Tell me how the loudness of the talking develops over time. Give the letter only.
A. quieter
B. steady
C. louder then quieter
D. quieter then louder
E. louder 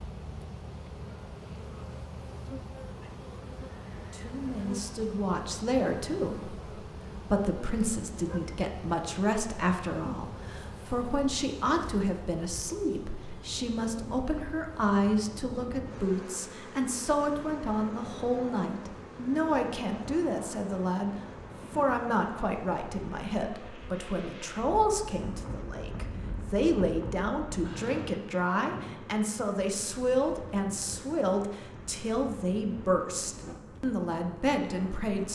B.